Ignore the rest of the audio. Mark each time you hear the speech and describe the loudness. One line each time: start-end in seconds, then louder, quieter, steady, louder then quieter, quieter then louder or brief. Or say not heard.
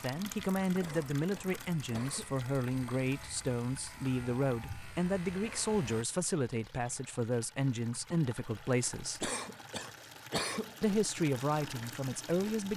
0.0-9.3 steady
10.8-12.7 brief.